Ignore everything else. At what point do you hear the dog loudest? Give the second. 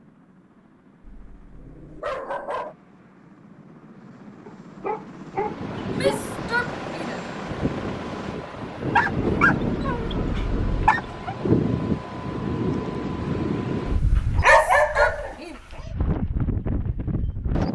15 s.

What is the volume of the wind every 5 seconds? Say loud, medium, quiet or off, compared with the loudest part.
off, loud, loud, loud.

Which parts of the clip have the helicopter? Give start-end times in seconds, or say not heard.
0.0-8.4.